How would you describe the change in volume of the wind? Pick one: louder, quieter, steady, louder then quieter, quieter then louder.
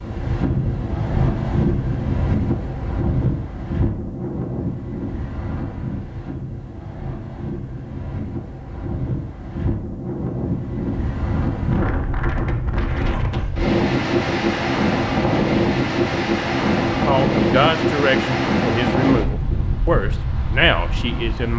quieter then louder.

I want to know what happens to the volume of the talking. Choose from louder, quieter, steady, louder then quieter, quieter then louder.
steady.